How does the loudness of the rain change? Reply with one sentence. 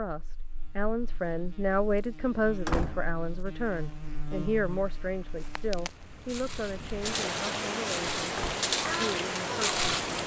The volume of the rain goes up.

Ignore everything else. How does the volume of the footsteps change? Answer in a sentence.
The loudness of the footsteps goes up.